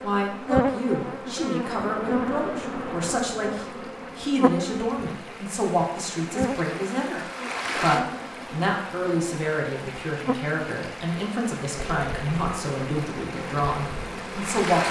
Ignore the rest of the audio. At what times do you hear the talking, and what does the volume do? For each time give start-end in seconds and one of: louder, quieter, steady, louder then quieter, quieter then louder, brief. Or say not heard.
0.0-14.8 steady.